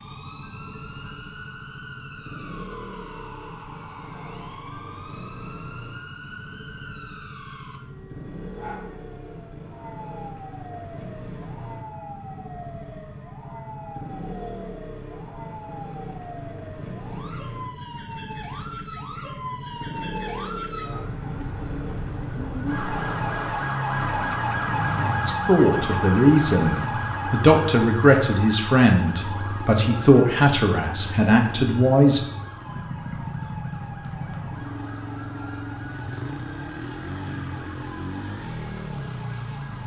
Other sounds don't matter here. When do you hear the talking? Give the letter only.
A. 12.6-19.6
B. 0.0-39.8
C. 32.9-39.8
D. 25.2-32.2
D.